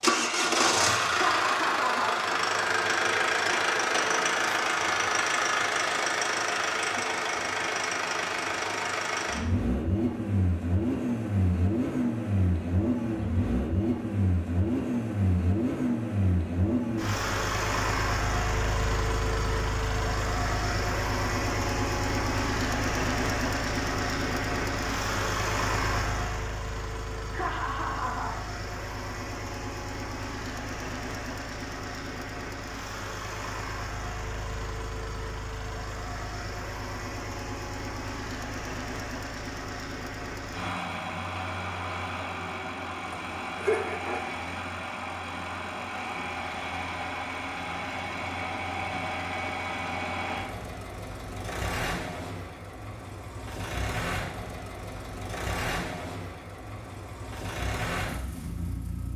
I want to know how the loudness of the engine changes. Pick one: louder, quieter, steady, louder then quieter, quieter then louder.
quieter.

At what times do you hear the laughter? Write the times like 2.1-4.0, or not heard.
1.1-2.1, 27.3-28.3, 43.1-44.3.